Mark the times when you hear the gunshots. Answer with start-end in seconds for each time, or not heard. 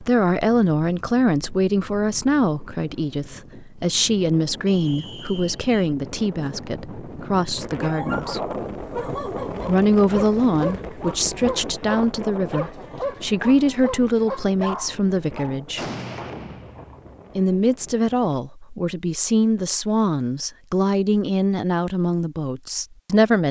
15.8-17.2.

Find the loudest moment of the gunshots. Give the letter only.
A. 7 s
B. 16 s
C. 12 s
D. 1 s
B.